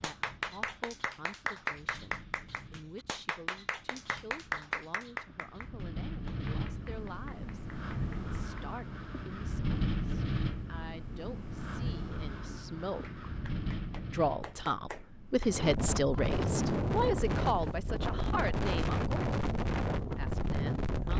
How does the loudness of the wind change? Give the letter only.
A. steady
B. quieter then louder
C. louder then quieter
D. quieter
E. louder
E.